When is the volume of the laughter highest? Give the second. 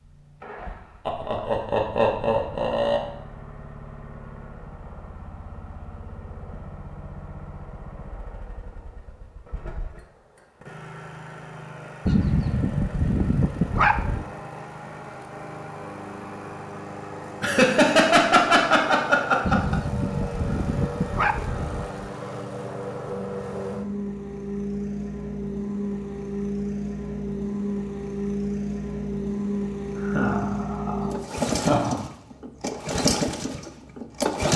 18 s.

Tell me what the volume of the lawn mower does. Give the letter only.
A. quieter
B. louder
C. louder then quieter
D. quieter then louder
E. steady
B.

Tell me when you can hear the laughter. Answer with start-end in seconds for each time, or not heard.
1.1-3.0, 17.4-19.8, 30.1-32.0.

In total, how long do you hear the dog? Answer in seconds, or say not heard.
5 s.